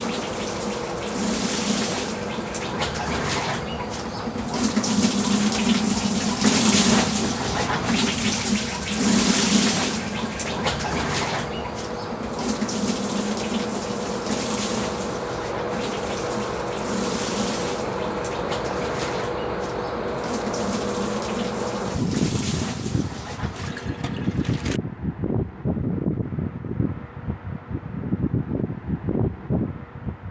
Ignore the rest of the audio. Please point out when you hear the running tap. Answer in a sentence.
The running tap can be heard from 0.0 to 24.8 s.